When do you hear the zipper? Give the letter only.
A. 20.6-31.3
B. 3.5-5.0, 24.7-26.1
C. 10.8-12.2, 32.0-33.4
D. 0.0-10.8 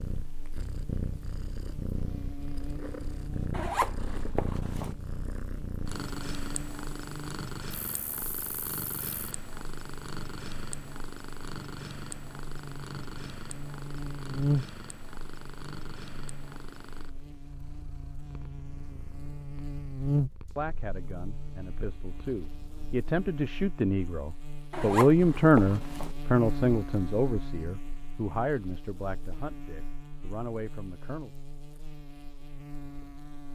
B.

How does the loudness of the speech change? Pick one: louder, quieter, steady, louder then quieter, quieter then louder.
louder then quieter.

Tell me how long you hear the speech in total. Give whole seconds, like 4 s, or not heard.
11 s.